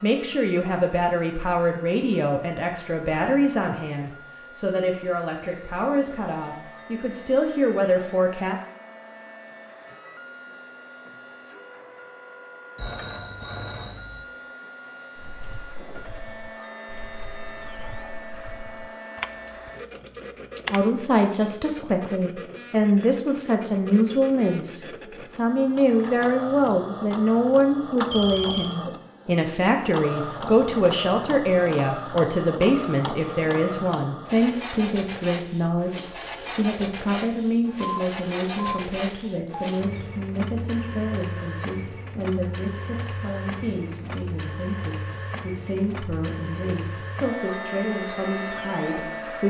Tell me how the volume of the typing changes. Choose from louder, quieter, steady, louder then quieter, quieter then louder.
louder then quieter.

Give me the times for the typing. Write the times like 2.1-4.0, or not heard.
15.2-20.9.